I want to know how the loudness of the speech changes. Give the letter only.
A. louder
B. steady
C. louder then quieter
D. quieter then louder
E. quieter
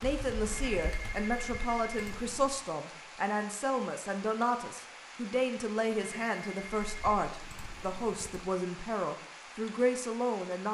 B.